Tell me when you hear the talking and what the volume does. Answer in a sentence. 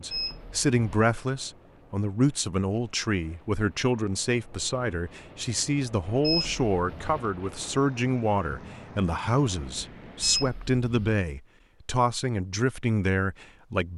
You can hear the talking from 0.0 to 13.9 s, at a steady volume.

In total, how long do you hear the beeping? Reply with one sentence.
You can hear the beeping for 3 seconds altogether.